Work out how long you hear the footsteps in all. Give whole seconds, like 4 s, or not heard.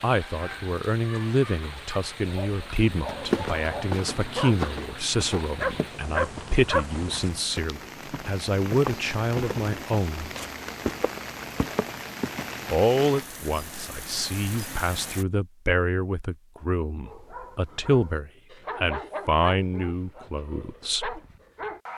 10 s.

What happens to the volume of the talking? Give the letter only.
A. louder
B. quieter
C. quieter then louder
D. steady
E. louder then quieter
D.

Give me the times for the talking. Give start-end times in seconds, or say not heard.
0.0-10.3, 12.7-21.2.